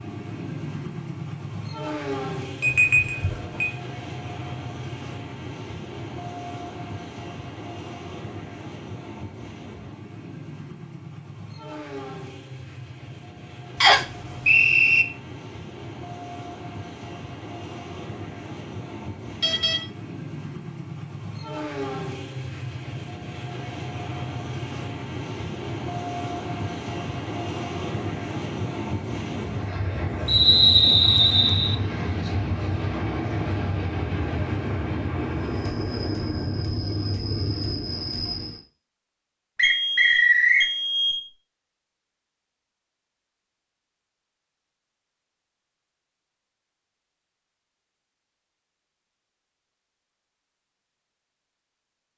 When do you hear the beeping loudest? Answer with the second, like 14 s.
3 s.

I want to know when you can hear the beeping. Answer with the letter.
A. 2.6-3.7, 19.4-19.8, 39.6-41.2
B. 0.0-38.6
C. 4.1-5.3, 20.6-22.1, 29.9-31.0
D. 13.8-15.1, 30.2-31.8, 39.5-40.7
A.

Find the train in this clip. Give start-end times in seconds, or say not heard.
0.0-38.6.